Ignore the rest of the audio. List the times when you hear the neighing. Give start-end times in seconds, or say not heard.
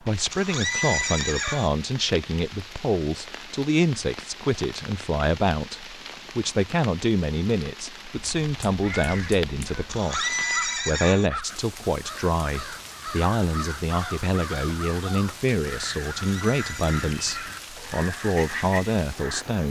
0.3-1.7, 9.9-11.3, 16.2-17.1.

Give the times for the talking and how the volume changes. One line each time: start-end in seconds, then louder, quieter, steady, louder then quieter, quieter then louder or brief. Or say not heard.
0.1-19.6 steady.